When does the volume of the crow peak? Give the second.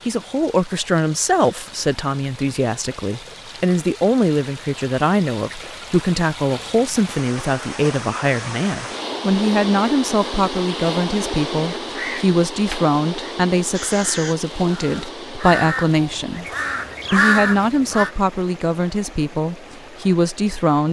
17 s.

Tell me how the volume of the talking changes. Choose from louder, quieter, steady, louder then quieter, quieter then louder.
steady.